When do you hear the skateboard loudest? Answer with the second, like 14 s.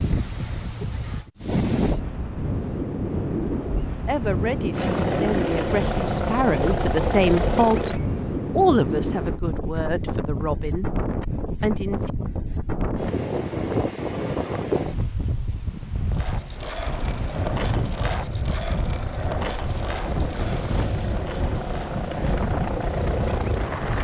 18 s.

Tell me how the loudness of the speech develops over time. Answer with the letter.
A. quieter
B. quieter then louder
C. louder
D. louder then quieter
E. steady
D.